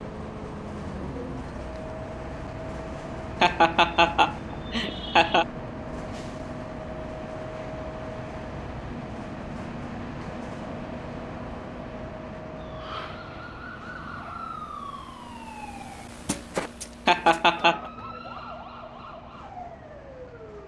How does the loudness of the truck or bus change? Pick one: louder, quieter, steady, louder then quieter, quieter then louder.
quieter.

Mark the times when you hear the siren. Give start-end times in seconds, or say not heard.
12.6-20.6.